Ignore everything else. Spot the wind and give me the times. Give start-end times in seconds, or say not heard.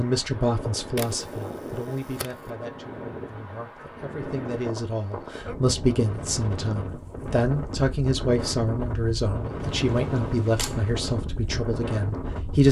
0.0-12.6.